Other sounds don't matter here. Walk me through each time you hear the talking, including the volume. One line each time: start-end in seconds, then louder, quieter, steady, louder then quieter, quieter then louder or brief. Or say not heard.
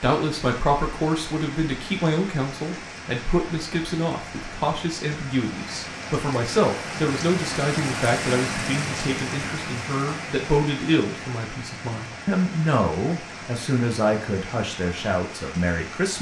0.0-16.1 steady.